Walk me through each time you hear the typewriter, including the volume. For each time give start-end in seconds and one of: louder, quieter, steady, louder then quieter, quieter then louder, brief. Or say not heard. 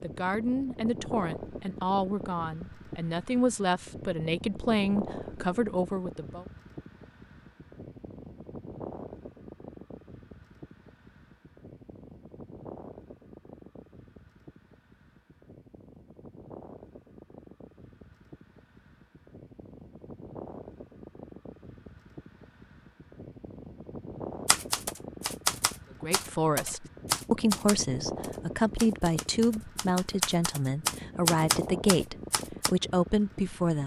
24.4-32.7 quieter then louder.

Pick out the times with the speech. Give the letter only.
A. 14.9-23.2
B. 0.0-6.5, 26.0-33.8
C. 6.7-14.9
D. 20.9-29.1
B.